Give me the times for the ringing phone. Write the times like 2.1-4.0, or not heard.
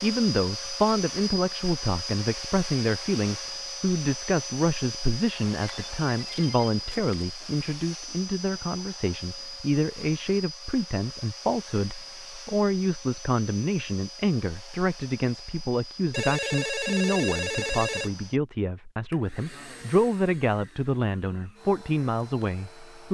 5.5-7.2, 16.1-18.1.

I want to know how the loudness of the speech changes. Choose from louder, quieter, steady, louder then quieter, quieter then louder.
steady.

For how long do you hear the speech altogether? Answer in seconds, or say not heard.
23 s.